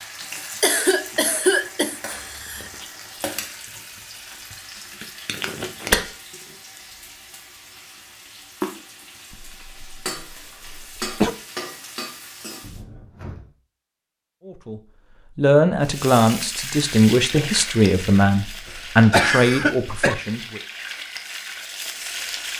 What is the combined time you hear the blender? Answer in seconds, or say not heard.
not heard.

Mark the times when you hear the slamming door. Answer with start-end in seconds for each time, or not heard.
12.6-13.5.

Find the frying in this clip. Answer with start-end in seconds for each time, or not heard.
0.0-12.8, 15.8-22.5.